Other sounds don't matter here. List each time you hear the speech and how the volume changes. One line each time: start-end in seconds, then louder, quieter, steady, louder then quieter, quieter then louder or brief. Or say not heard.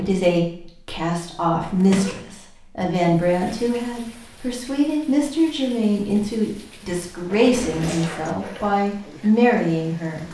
0.0-10.2 steady.